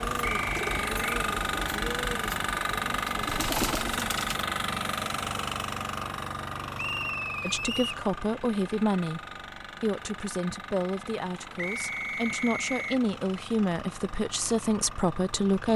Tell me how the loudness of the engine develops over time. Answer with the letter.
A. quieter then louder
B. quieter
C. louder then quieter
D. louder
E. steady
B.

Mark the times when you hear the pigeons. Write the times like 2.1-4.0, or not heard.
0.0-4.5.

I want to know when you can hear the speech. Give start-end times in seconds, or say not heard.
7.4-9.2, 9.8-15.7.